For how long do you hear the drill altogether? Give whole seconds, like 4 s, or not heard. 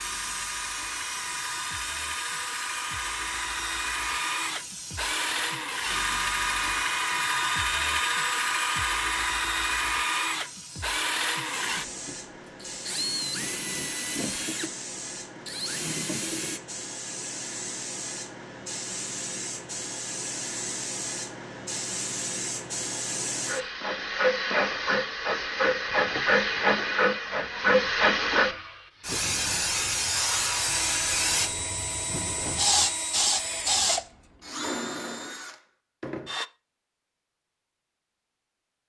23 s.